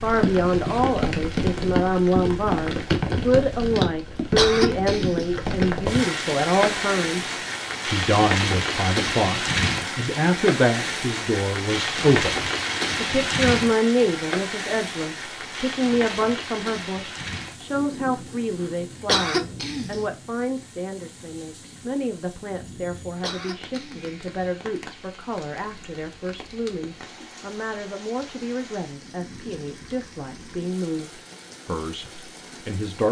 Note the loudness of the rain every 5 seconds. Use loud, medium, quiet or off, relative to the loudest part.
loud, loud, loud, medium, quiet, quiet, quiet.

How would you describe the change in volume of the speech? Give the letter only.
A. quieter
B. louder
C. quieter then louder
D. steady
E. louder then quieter
A.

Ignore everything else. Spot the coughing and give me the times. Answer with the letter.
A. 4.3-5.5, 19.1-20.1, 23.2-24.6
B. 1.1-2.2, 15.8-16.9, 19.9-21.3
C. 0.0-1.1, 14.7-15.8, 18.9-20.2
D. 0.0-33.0
A.